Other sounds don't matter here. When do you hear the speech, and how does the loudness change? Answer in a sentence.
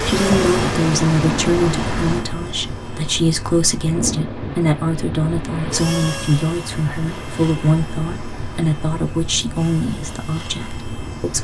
You can hear the speech from 0.1 to 11.4 s, at a steady volume.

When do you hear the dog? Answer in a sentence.
The dog can't be heard in this clip.